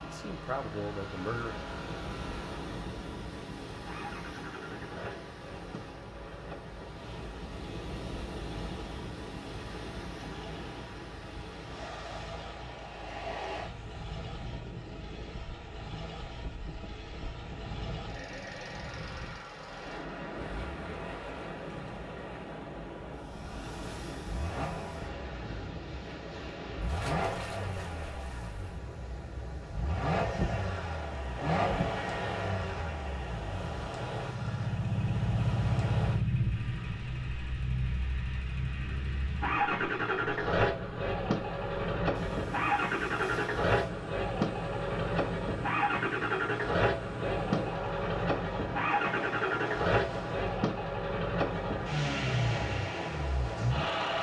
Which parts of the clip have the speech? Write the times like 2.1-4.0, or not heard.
0.0-1.6.